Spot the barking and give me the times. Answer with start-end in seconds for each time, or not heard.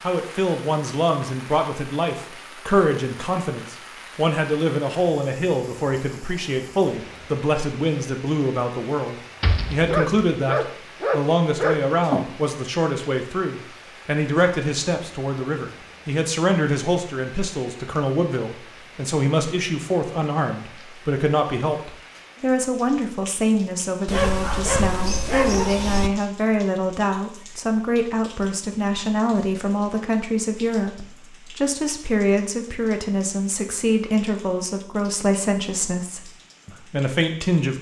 9.4-12.2, 24.1-26.1.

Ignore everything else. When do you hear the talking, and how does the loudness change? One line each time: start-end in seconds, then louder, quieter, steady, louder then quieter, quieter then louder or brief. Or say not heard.
0.0-37.7 steady.